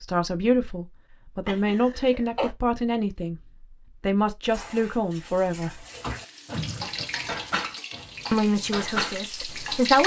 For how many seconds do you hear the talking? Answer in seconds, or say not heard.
7 s.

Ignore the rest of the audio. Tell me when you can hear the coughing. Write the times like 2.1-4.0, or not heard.
1.4-2.5, 6.5-7.0.